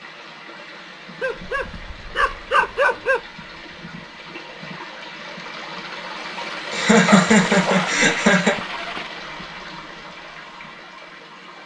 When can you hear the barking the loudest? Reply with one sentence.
The volume of the barking peaks at 3 seconds.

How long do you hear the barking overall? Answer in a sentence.
The barking can be heard for 4 seconds in total.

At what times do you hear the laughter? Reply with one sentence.
You can hear the laughter from 6.7 to 8.6 s.